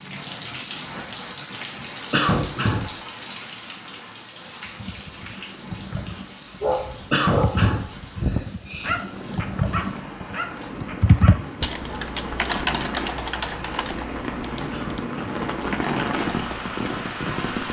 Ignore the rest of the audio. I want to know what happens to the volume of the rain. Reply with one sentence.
The volume of the rain goes down, then up.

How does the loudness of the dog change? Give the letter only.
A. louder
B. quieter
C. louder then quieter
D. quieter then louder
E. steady
B.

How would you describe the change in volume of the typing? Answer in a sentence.
The volume of the typing goes up, then down.